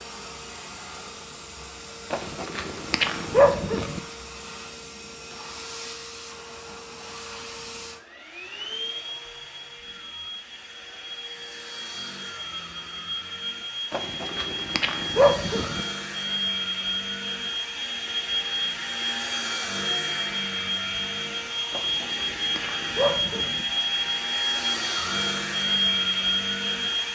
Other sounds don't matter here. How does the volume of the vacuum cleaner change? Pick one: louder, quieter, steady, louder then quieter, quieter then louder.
louder.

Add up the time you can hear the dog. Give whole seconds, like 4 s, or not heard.
6 s.